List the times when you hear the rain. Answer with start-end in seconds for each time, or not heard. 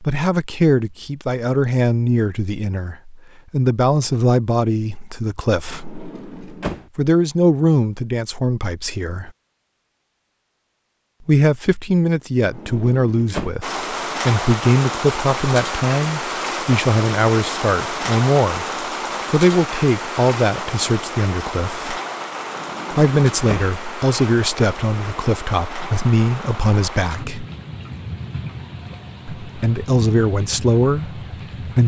13.6-31.8.